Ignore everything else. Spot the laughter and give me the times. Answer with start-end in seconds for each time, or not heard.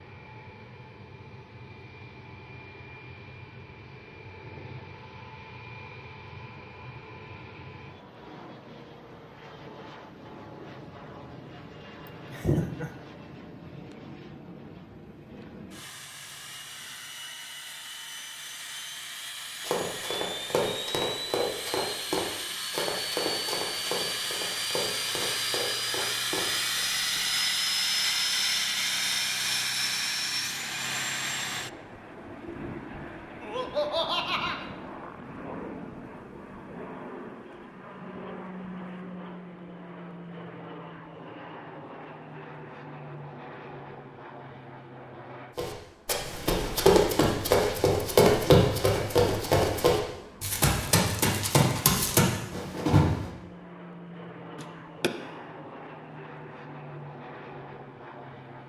12.1-12.9, 33.4-34.6, 54.5-55.1.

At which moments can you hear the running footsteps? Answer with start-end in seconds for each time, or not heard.
19.6-27.2, 45.5-53.3.